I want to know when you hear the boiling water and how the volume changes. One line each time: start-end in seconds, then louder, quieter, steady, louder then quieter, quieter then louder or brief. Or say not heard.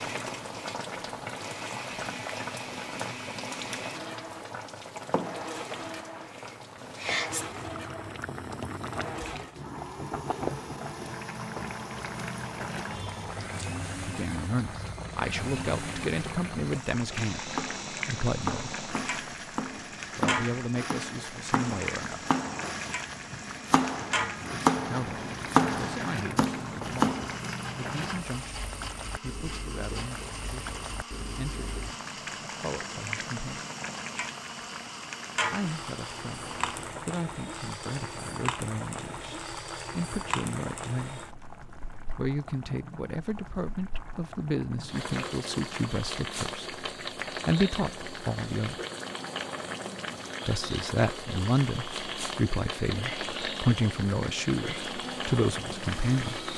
0.0-56.5 steady.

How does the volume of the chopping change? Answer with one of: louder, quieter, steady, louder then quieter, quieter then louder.
louder.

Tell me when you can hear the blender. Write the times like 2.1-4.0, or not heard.
0.0-37.0, 51.4-56.5.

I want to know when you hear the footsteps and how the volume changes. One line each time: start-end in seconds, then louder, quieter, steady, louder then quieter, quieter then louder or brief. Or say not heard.
not heard.